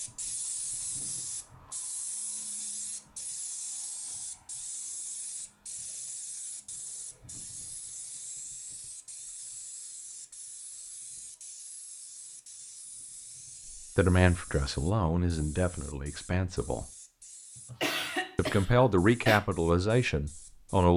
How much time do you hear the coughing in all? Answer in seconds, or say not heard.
2 s.